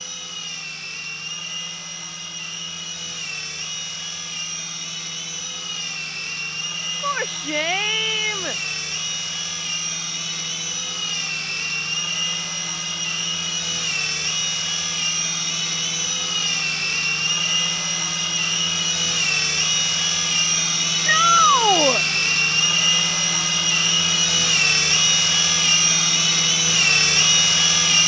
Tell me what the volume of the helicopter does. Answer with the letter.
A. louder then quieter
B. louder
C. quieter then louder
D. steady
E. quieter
B.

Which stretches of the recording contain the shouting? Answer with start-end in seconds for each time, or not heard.
7.0-8.6, 21.1-22.1.